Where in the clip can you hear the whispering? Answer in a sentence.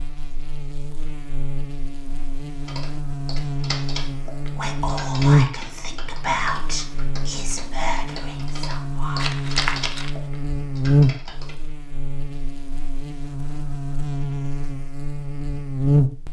The whispering can be heard from 4.5 to 9.4 s.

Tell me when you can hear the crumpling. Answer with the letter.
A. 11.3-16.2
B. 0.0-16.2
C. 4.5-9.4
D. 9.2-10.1
D.